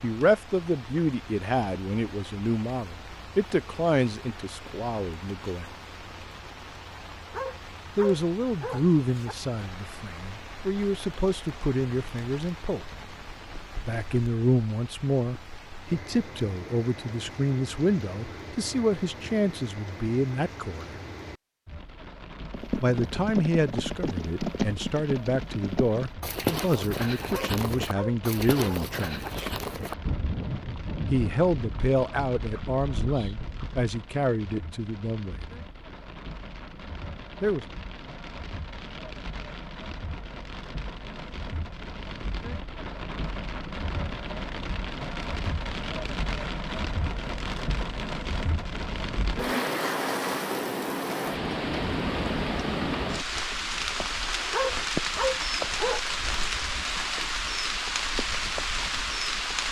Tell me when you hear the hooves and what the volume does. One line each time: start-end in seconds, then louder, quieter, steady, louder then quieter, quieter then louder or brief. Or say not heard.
22.5-33.9 quieter.